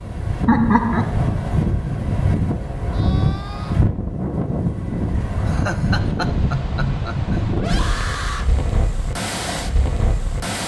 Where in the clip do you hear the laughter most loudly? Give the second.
1 s.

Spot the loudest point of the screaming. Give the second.
8 s.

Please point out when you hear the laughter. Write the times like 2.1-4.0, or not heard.
0.5-1.1, 5.5-7.5.